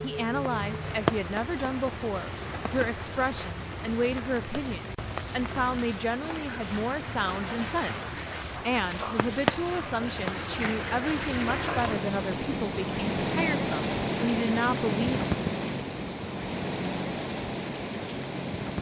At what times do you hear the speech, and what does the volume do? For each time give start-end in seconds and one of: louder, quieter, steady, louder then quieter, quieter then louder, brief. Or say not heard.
0.0-15.2 steady.